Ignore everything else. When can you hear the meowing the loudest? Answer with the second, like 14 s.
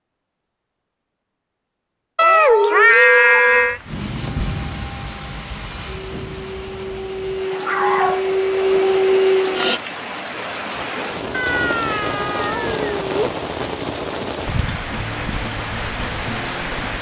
3 s.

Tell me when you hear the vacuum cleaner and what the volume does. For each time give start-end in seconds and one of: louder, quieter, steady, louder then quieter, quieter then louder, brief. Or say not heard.
4.2-9.8 louder.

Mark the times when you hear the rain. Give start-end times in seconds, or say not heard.
3.5-16.9.